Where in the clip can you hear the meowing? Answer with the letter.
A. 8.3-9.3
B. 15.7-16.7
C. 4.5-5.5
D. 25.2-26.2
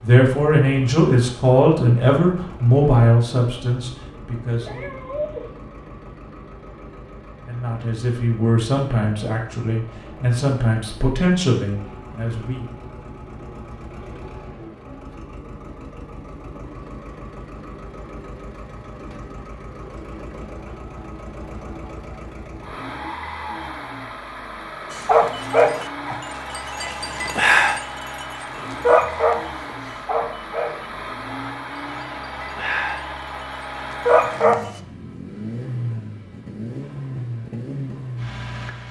C.